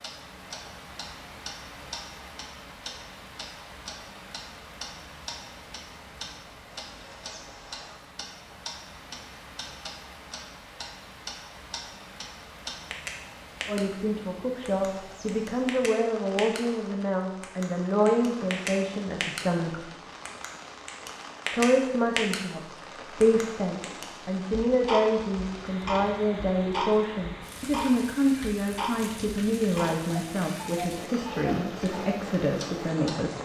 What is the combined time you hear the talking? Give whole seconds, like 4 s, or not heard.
18 s.